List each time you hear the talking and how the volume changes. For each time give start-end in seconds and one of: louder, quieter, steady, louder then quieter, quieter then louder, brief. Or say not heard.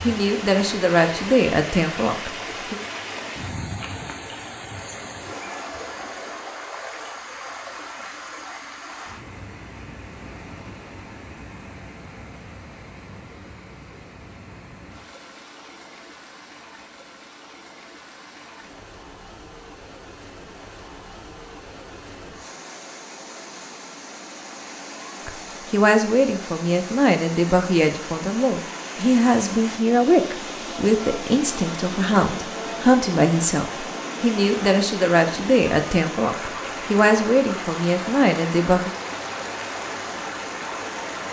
0.0-2.8 brief
25.2-38.9 steady.